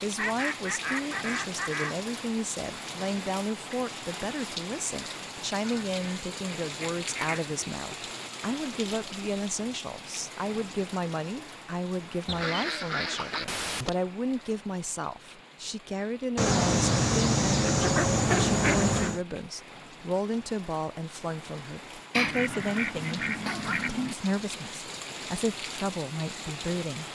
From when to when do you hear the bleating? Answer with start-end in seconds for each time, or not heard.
not heard.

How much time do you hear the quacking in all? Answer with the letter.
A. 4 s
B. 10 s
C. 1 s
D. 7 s
B.